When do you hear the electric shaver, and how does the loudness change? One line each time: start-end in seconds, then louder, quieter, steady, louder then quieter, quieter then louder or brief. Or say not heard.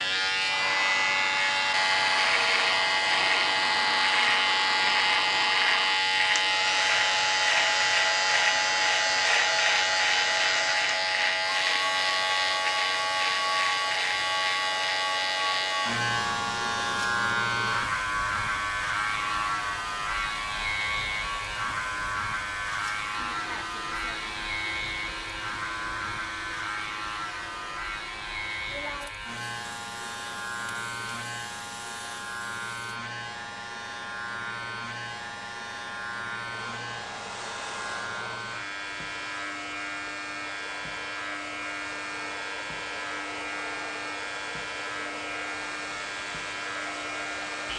0.0-47.7 quieter.